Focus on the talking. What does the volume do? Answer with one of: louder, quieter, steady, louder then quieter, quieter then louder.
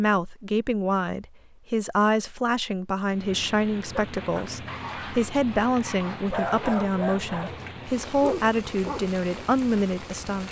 steady.